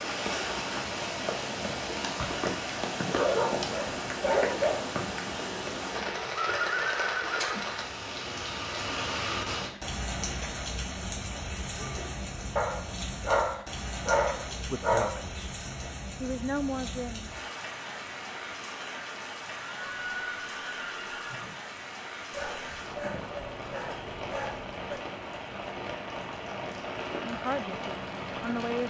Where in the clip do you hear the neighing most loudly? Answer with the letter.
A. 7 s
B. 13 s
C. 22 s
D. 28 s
A.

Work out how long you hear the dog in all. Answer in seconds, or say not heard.
7 s.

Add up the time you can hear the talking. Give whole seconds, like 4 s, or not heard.
4 s.